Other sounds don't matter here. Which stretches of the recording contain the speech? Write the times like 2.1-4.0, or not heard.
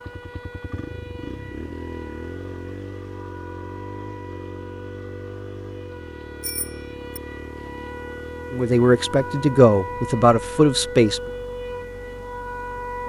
8.5-11.2.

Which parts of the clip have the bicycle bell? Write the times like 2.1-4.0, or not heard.
6.4-7.2.